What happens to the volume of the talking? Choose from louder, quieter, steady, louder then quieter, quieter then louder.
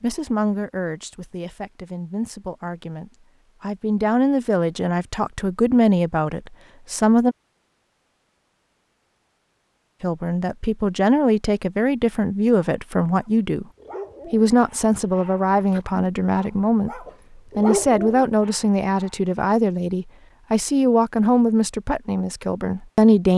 louder.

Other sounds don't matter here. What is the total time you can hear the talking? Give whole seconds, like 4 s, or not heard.
20 s.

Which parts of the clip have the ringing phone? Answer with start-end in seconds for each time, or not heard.
not heard.